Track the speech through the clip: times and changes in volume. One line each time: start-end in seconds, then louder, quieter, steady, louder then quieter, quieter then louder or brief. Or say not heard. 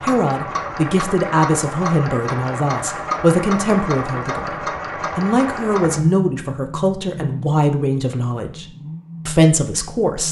0.0-8.7 steady
9.2-10.2 brief.